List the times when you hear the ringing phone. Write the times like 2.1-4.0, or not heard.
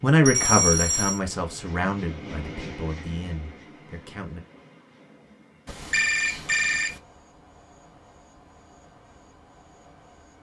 0.2-1.2, 5.7-7.0.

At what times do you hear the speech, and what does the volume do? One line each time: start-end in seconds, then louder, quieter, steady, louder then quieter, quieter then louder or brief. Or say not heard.
0.0-4.4 quieter.